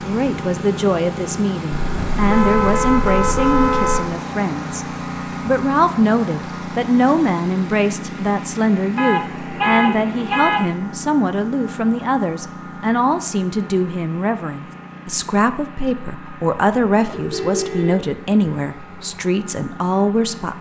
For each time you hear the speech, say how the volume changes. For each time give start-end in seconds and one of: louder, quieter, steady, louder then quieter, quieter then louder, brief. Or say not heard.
0.0-20.5 steady.